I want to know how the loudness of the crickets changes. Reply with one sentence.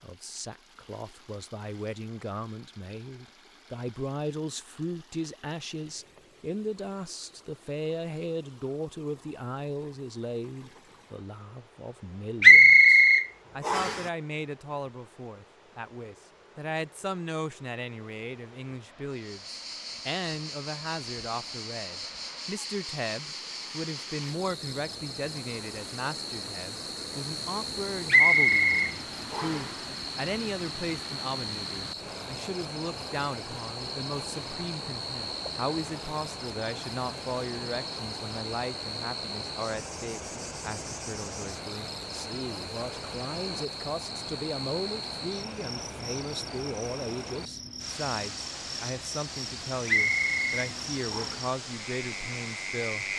The loudness of the crickets stays about the same.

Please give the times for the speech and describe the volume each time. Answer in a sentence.
You can hear the speech from 0.0 to 53.0 s, at a steady volume.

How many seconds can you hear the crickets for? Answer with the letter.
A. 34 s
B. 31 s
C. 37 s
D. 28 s
A.